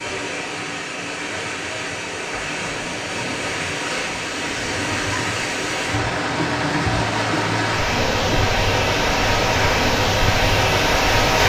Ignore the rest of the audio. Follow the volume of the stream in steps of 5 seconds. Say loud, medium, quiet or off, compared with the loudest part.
medium, loud, loud.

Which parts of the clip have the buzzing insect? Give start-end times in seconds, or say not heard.
7.8-11.4.